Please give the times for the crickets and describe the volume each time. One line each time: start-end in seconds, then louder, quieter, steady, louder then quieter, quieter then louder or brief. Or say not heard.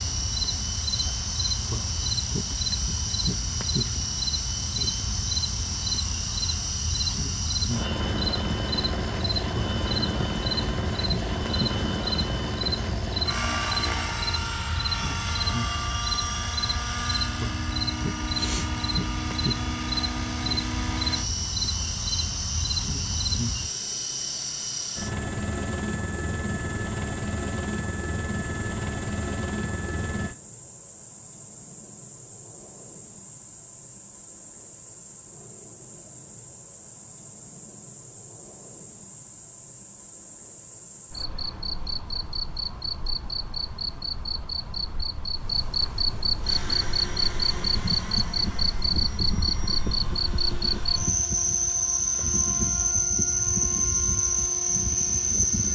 0.0-55.6 quieter then louder.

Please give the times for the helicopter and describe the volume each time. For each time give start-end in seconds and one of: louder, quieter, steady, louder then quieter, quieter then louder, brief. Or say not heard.
0.0-30.4 steady
46.4-55.6 steady.